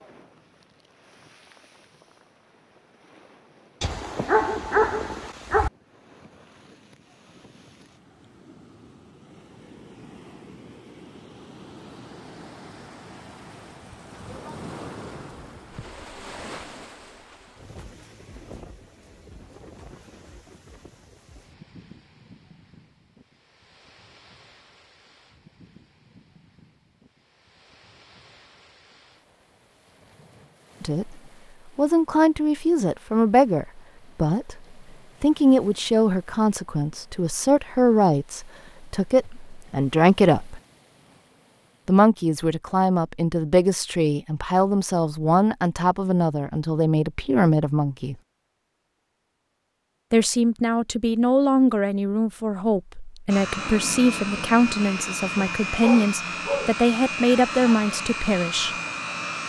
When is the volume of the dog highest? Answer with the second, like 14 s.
5 s.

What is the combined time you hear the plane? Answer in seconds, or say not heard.
6 s.